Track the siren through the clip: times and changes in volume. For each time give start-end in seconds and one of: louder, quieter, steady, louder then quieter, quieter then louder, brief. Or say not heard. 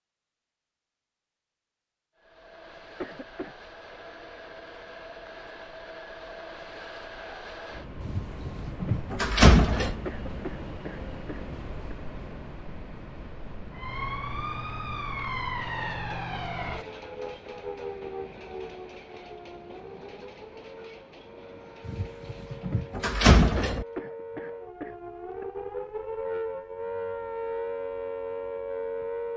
13.7-29.3 quieter then louder.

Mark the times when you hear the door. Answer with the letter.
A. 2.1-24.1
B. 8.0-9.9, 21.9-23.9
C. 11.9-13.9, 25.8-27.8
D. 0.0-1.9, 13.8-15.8
B.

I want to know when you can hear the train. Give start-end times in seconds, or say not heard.
2.1-24.1.